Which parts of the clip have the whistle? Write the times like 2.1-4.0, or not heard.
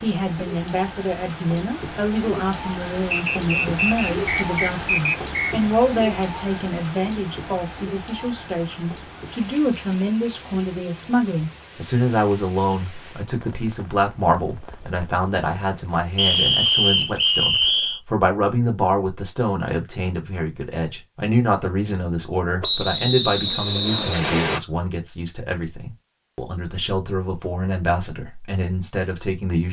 3.1-5.7, 16.1-18.0, 22.6-24.6.